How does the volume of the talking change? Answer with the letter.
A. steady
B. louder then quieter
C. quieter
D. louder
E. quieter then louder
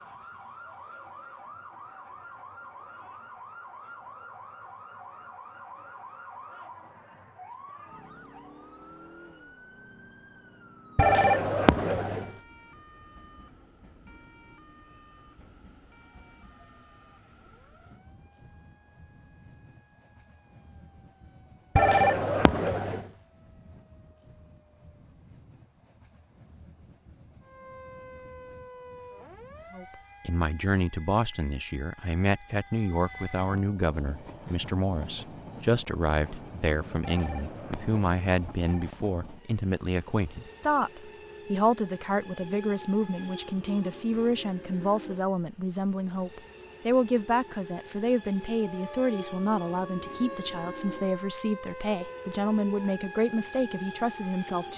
A.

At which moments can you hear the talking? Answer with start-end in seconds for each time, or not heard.
29.8-54.7.